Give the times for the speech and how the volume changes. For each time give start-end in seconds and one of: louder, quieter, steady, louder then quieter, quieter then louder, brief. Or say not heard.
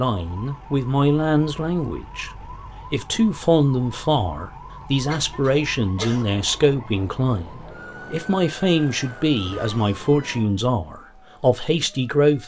0.0-12.4 steady.